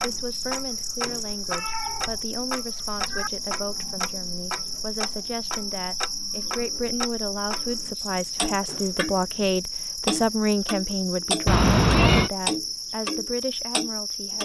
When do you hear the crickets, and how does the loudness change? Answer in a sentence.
You can hear the crickets from 0.0 to 14.4 s, at a steady volume.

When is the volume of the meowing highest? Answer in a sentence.
The loudest moment of the meowing is at 12 seconds.